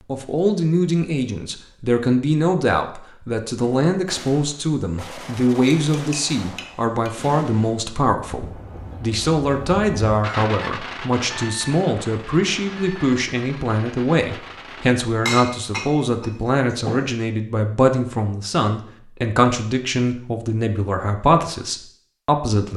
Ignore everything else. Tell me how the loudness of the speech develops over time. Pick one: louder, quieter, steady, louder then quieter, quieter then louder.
steady.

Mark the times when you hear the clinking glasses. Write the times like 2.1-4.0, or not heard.
5.9-7.2, 15.2-17.1.